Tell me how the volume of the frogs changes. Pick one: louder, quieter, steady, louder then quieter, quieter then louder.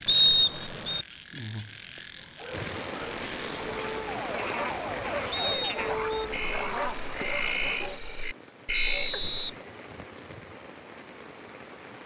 louder.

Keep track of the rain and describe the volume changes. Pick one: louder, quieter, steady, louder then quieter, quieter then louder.
quieter.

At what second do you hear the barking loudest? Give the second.
6 s.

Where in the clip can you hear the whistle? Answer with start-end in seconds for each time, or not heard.
0.1-1.1, 5.3-6.2, 8.7-10.2.